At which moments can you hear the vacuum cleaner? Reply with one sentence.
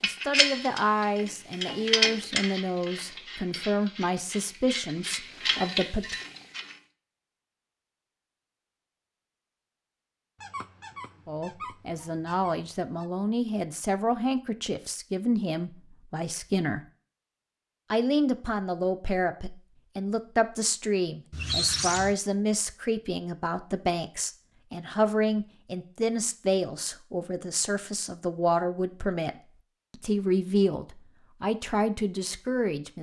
The vacuum cleaner can't be heard in this clip.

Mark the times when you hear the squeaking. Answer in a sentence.
You can hear the squeaking from 10.4 to 13.1 s and from 21.3 to 22.1 s.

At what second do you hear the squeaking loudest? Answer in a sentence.
The loudest moment of the squeaking is at 22 seconds.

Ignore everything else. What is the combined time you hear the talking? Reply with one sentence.
You can hear the talking for 26 seconds altogether.